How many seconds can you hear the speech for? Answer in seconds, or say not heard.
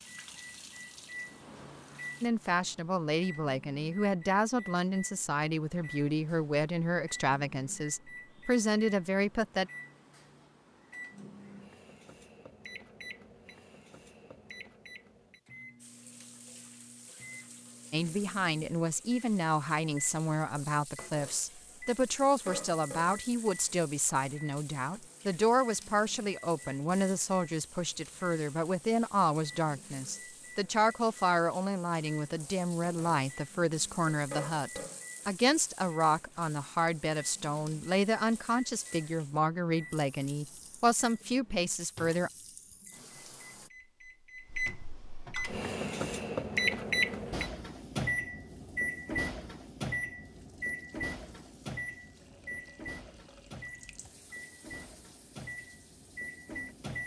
32 s.